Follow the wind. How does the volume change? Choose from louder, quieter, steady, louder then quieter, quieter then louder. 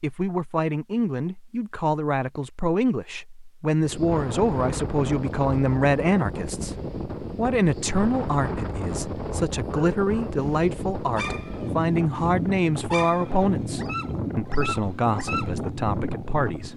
steady.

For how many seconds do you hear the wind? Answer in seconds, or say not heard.
13 s.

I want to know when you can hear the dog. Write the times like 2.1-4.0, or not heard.
9.7-15.5.